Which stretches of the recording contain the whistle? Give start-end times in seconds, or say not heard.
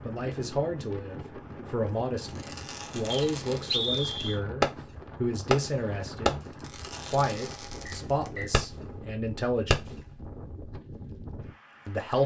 3.1-4.4, 7.8-8.6.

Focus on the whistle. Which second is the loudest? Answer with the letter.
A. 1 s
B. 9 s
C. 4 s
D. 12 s
C.